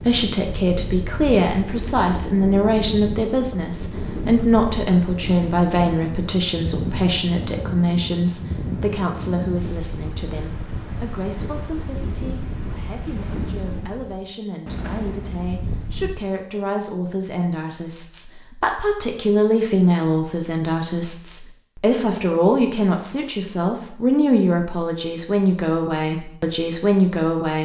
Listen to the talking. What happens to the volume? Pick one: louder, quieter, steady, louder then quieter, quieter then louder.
quieter then louder.